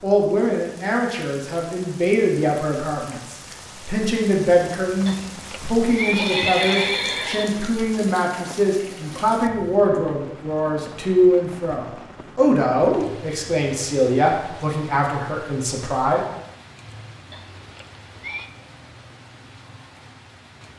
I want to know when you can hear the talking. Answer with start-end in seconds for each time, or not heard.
0.0-16.2.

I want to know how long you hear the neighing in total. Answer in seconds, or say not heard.
4 s.